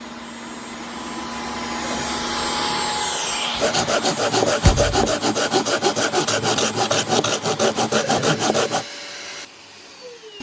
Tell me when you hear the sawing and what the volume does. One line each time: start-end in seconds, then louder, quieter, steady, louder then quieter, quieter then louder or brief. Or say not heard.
3.5-8.8 steady.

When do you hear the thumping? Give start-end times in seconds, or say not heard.
4.6-5.1.